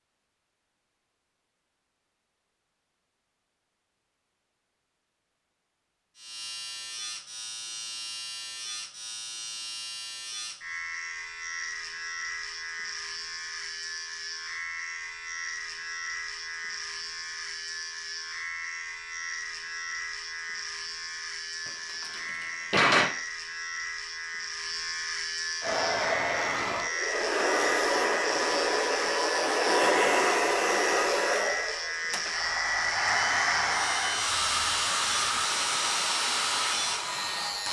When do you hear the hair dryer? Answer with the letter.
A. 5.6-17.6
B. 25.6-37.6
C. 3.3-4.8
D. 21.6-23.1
B.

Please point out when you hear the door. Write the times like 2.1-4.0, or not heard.
21.6-23.1.